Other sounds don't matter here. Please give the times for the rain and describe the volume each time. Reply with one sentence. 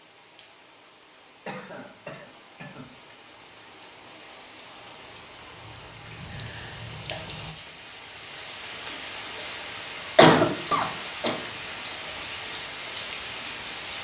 You can hear the rain from 0.0 to 13.9 s, getting louder.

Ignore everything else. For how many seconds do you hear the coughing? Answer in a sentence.
You can hear the coughing for 4 seconds altogether.